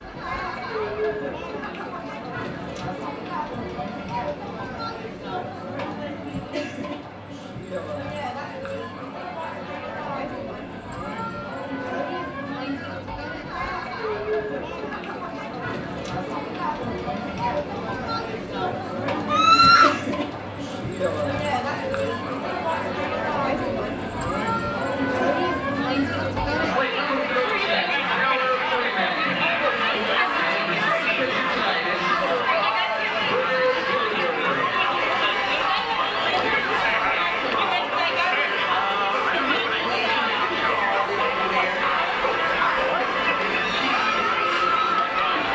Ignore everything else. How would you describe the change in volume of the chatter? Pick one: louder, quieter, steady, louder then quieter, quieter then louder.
louder.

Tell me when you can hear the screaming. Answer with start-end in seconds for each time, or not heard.
19.2-19.9.